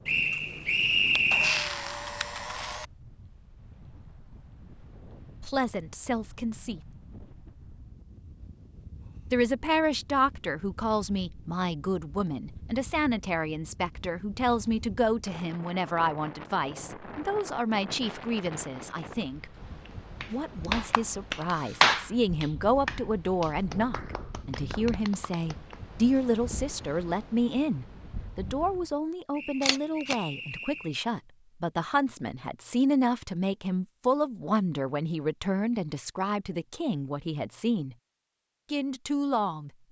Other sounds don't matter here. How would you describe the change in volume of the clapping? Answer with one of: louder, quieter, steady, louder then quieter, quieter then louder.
louder then quieter.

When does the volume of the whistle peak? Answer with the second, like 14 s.
1 s.